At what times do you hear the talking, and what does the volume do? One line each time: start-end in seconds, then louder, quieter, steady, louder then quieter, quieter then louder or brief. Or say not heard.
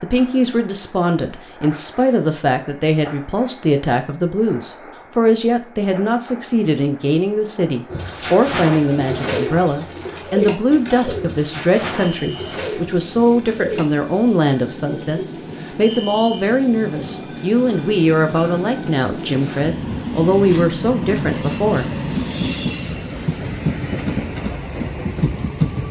0.0-21.9 steady.